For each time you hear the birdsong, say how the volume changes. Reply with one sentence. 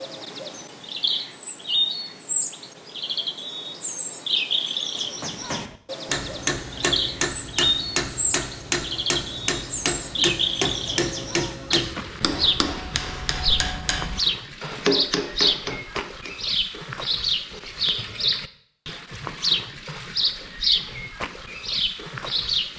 The birdsong can be heard from 0.0 to 22.7 s, at a steady volume.